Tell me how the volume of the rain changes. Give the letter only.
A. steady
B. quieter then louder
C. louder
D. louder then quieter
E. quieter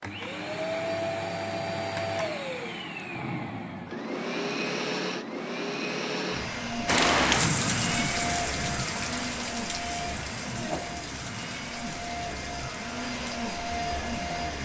E.